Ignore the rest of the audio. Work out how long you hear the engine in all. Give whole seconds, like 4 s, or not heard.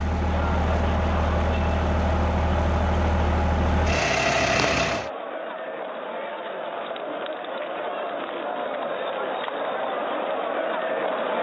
5 s.